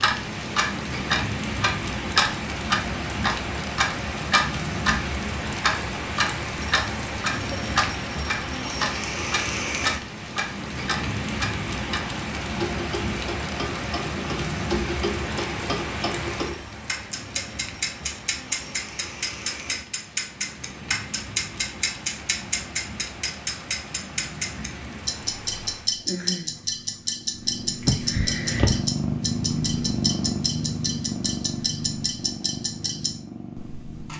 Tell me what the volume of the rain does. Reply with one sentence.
The volume of the rain goes down.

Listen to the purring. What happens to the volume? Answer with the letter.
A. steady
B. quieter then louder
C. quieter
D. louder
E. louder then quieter
E.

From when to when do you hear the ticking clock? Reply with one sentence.
The ticking clock can be heard from 0.0 to 34.1 s.